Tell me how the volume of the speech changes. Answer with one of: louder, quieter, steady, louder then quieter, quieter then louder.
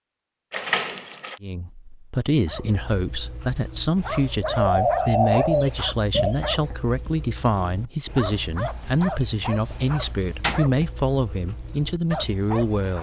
steady.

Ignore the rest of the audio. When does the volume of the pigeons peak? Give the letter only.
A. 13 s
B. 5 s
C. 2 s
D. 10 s
B.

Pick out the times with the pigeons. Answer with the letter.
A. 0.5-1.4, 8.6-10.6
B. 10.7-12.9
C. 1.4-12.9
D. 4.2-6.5
D.